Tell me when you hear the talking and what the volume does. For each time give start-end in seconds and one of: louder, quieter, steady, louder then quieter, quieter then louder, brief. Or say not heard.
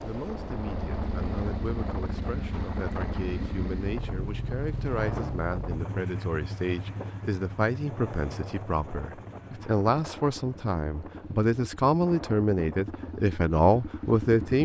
0.0-14.6 louder.